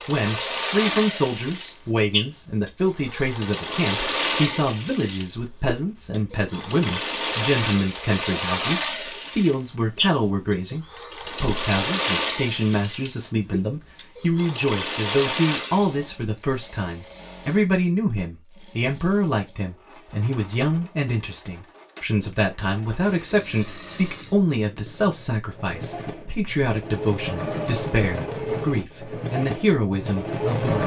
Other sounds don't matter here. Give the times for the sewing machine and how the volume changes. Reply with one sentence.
The sewing machine can be heard from 0.0 to 30.8 s, getting quieter then louder.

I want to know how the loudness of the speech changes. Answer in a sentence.
The volume of the speech stays about the same.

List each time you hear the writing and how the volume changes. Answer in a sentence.
You can't hear the writing here.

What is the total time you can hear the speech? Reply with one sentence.
The speech can be heard for 31 seconds in total.